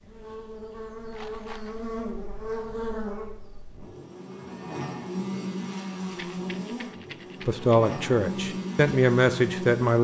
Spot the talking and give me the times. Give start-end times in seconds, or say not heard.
7.5-9.9.